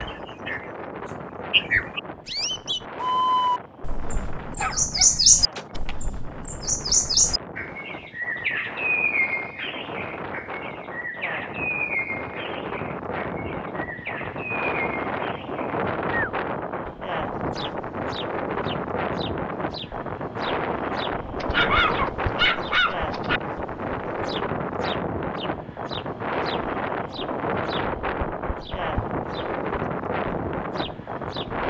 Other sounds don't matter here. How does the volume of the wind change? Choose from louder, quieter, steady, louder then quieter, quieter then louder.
louder.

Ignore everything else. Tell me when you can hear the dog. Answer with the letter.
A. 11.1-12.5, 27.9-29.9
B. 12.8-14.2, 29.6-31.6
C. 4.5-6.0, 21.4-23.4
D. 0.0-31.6
C.